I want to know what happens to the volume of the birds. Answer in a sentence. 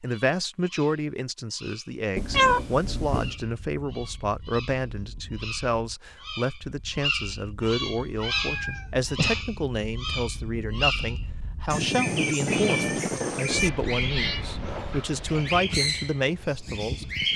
The loudness of the birds goes up.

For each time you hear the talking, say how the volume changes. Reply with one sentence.
You can hear the talking from 0.0 to 17.3 s, at a steady volume.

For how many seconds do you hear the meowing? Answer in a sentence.
You can hear the meowing for 5 seconds altogether.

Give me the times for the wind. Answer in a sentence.
The wind can be heard from 3.2 to 17.3 s.